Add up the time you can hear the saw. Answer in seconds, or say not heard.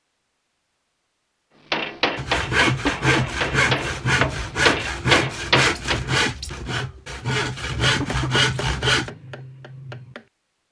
7 s.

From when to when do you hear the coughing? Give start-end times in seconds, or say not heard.
2.9-3.4, 8.0-8.4.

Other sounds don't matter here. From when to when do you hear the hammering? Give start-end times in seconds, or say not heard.
1.7-6.0, 7.8-10.2.